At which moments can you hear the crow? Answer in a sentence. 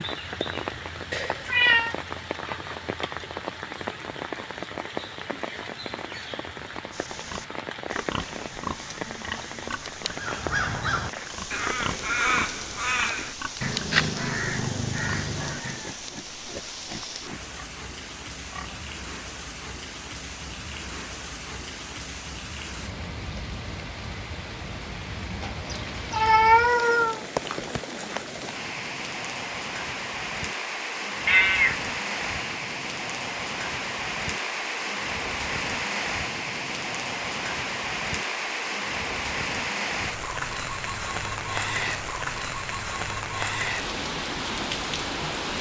The crow can be heard from 10.2 to 15.9 s.